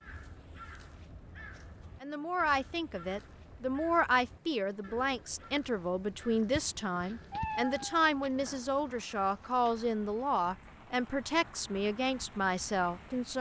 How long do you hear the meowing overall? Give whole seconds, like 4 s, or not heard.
2 s.